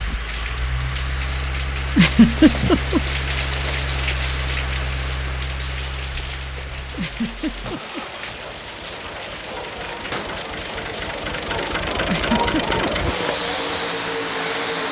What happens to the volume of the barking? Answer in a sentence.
The loudness of the barking goes up.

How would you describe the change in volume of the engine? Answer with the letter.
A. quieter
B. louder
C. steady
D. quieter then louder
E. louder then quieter
D.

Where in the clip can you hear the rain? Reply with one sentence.
You can hear the rain from 0.0 to 14.8 s.